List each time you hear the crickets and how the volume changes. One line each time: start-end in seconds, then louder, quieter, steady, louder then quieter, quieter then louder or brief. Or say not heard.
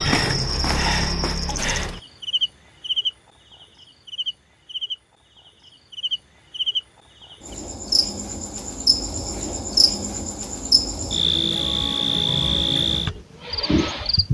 0.0-14.2 quieter then louder.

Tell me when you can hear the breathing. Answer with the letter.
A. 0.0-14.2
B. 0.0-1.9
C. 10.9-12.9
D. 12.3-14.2
B.